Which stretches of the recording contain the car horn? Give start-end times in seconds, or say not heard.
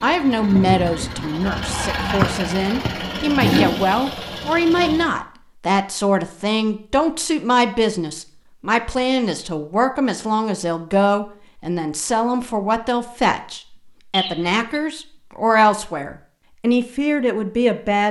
not heard.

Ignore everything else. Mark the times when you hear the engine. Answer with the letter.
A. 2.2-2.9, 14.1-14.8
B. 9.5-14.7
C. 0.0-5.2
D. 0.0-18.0
C.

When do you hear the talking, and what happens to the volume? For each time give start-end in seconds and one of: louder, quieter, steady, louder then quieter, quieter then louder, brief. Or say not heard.
0.0-18.0 steady.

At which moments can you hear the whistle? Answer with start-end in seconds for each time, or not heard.
2.2-2.9, 14.1-14.8.